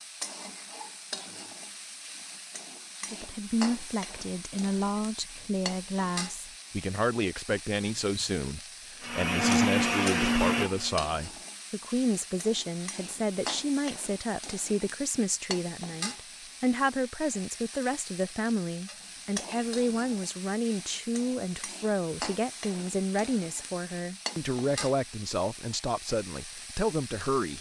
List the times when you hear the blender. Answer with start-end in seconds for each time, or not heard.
9.0-11.1.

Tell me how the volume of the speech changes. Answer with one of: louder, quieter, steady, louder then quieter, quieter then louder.
steady.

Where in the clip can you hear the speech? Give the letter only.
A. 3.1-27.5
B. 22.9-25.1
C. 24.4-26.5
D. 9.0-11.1
A.